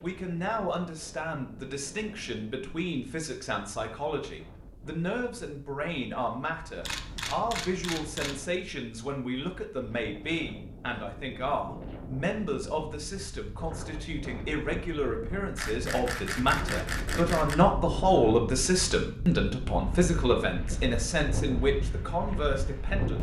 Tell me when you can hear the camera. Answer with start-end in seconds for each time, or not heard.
6.8-8.4, 15.6-17.6.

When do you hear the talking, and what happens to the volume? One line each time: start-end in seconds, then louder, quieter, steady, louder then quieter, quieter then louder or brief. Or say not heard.
0.0-23.1 louder.